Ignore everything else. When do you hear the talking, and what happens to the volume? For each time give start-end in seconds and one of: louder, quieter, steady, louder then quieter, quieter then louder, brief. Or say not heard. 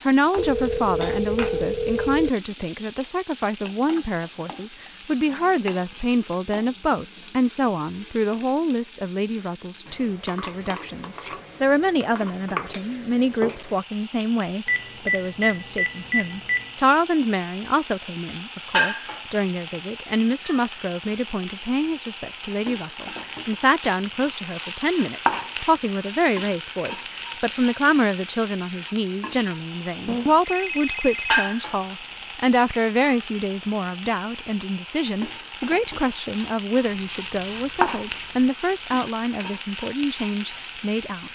0.1-41.3 steady.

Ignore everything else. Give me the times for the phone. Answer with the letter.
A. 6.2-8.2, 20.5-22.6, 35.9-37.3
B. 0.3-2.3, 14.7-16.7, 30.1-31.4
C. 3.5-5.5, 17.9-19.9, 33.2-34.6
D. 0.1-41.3
B.